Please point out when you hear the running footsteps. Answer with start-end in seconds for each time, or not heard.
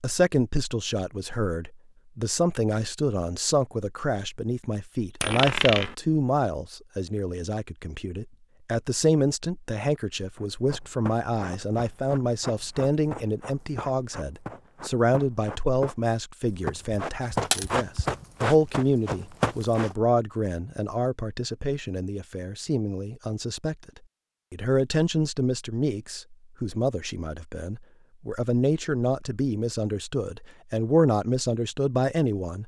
10.3-19.9.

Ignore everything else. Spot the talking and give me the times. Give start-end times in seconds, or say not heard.
0.0-23.9, 24.5-32.6.